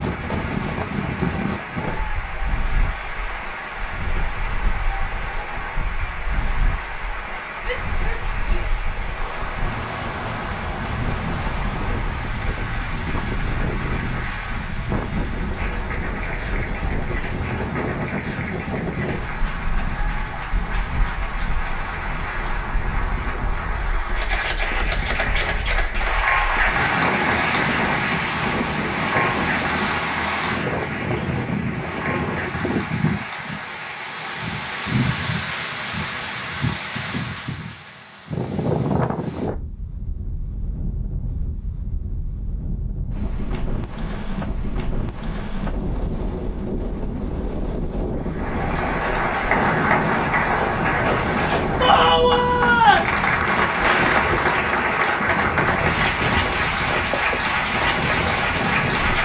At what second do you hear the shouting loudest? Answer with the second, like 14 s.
53 s.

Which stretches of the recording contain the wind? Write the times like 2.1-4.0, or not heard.
0.0-59.2.